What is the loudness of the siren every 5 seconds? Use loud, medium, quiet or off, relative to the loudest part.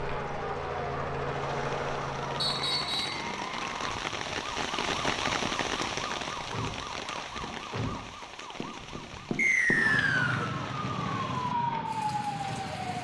medium, medium, loud.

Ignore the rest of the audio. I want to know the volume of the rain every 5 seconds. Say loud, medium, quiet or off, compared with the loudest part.
loud, loud, medium.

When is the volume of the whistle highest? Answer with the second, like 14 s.
10 s.